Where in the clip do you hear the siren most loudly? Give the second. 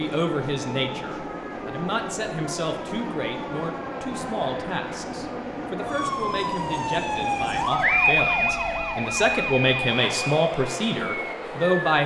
8 s.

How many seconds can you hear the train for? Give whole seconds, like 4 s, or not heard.
12 s.